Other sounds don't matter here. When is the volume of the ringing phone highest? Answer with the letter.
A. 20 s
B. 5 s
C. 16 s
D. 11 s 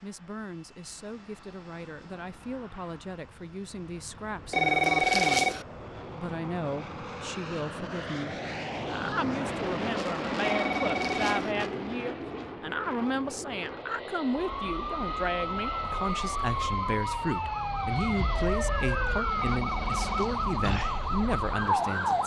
B.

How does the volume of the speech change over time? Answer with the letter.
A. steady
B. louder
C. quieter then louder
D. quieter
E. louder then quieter
B.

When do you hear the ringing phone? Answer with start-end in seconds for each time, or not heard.
4.5-5.7, 10.4-11.6, 19.4-20.3.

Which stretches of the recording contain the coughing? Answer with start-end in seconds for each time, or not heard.
not heard.